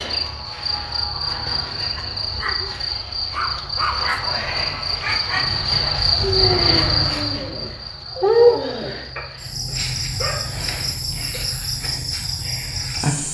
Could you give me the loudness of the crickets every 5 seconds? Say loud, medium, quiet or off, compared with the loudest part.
medium, loud, medium.